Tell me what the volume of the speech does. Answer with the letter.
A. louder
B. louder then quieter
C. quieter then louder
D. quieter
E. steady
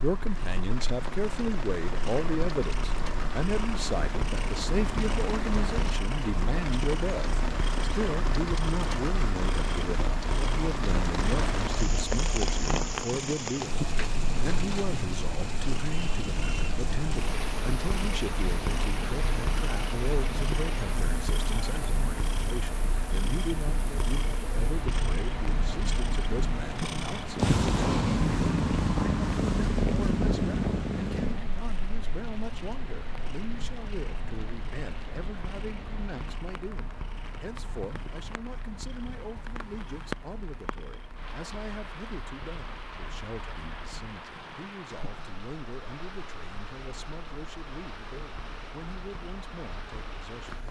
D.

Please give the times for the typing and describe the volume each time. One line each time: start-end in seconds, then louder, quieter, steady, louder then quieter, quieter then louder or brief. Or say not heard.
not heard.